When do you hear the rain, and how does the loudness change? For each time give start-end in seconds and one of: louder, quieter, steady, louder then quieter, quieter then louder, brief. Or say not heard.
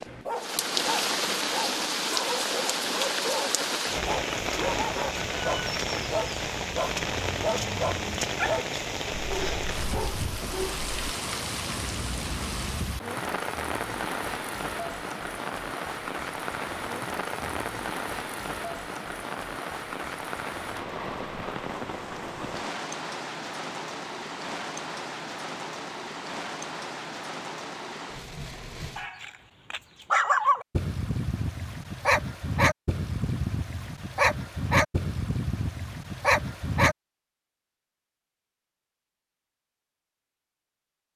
0.0-29.1 quieter.